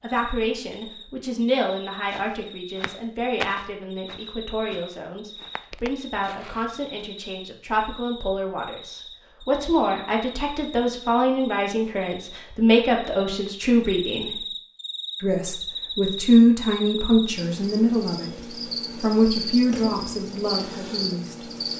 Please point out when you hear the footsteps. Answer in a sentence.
The footsteps can be heard from 1.6 to 7.0 s.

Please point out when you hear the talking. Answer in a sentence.
The talking can be heard from 0.0 to 14.3 s and from 15.2 to 21.4 s.